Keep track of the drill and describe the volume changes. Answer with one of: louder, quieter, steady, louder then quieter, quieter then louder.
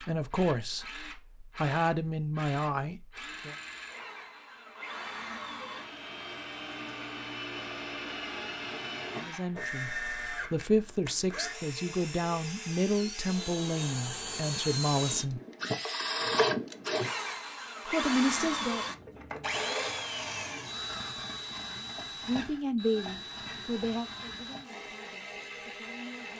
louder then quieter.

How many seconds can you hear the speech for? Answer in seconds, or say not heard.
15 s.